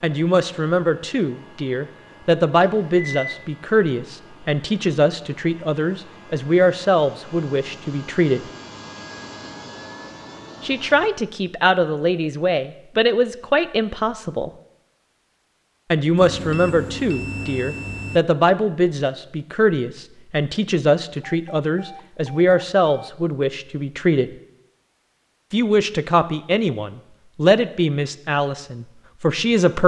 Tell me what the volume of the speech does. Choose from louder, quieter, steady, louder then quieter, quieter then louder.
steady.